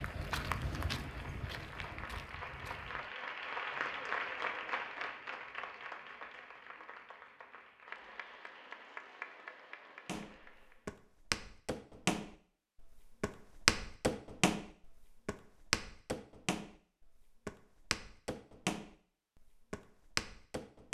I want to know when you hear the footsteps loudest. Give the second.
14 s.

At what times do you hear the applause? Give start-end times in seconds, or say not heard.
0.0-10.8.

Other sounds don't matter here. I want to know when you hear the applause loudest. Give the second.
4 s.